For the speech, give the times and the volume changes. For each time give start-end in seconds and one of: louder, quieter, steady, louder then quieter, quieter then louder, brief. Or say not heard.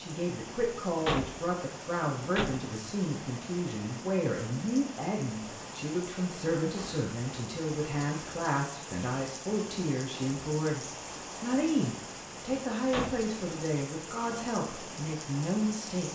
0.0-16.0 steady.